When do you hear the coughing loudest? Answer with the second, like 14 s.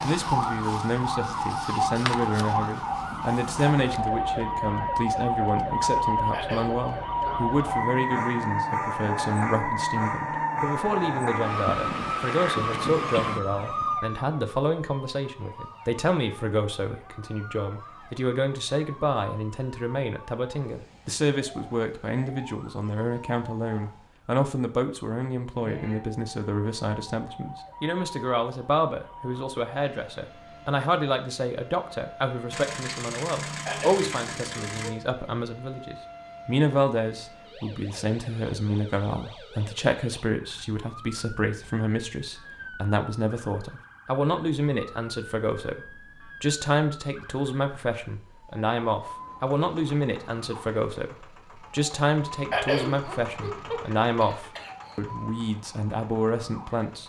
53 s.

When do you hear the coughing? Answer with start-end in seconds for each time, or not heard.
6.3-7.3, 33.6-35.0, 52.5-54.7.